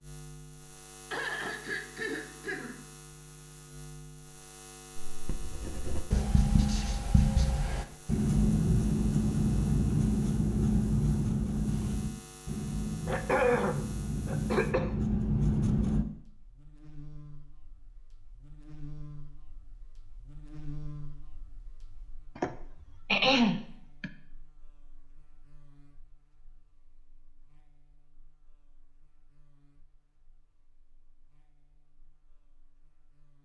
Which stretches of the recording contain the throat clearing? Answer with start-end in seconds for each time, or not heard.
1.1-2.8, 13.1-14.9, 22.4-24.1.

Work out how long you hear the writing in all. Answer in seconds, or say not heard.
11 s.